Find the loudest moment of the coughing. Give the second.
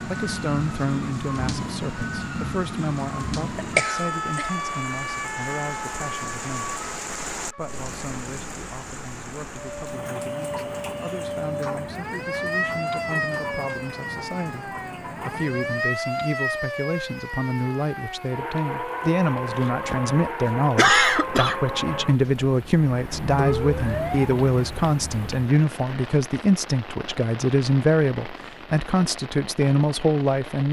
21 s.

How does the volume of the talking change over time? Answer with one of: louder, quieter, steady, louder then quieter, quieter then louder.
quieter then louder.